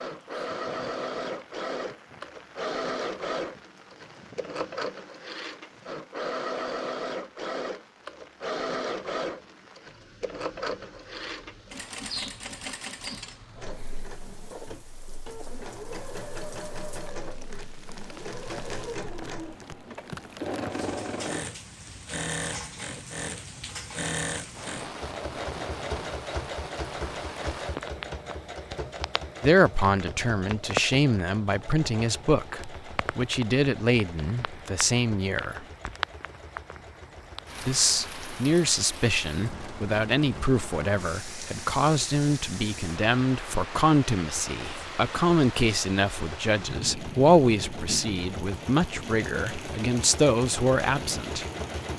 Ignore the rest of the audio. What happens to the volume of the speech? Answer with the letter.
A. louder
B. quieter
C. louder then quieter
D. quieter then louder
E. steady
E.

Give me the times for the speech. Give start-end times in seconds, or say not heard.
29.4-35.6, 37.6-51.5.